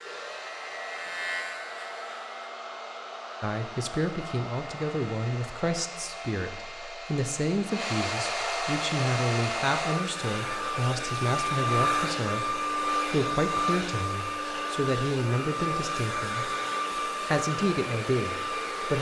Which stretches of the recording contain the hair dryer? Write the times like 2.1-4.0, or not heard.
0.0-18.9.